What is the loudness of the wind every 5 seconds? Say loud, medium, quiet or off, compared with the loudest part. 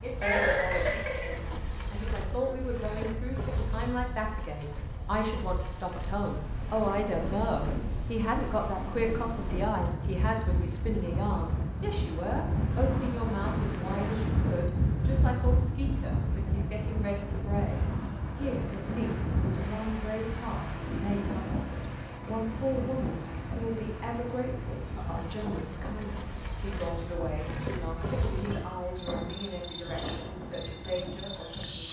quiet, medium, loud, loud, medium, medium, medium.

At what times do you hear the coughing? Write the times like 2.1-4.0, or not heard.
0.2-1.4.